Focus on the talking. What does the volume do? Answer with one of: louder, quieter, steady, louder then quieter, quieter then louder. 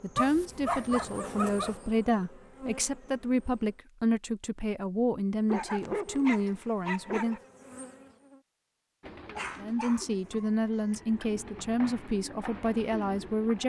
steady.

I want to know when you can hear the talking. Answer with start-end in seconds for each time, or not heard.
0.0-7.4, 9.6-13.6.